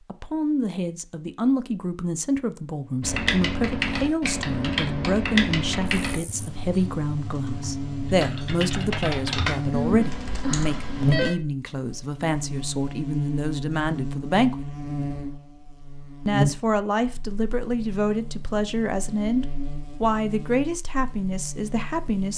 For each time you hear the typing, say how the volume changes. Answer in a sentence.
You can hear the typing from 3.0 to 11.3 s, getting quieter then louder.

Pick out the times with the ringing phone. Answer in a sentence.
The ringing phone can be heard from 9.7 to 11.4 s.